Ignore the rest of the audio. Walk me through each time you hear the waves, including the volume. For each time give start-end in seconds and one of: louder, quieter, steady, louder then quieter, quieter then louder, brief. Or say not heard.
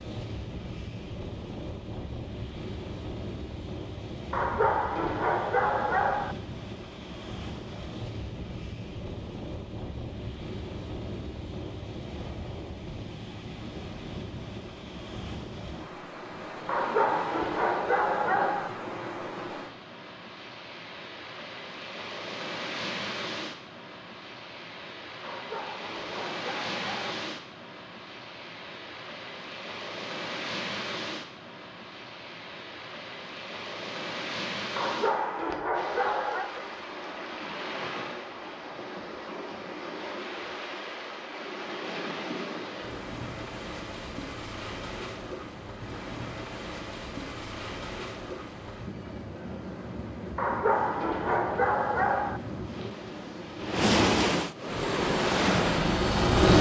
0.0-56.2 louder.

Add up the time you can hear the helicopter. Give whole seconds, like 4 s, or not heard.
2 s.